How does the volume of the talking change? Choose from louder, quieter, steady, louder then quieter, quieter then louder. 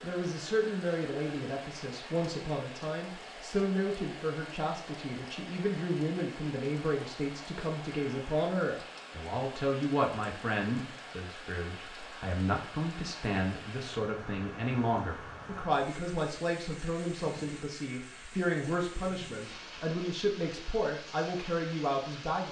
steady.